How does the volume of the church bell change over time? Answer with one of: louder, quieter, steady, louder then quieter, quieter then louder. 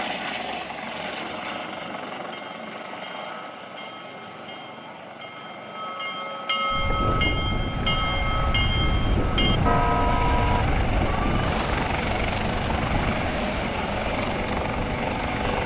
louder.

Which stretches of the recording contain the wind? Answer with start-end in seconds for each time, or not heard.
6.7-15.6.